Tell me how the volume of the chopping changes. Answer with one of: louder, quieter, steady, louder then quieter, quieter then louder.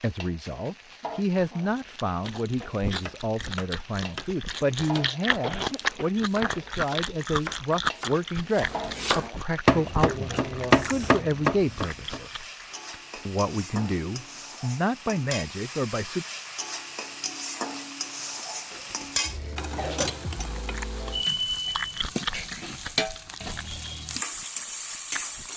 louder.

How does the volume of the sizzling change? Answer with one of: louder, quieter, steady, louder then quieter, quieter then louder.
louder.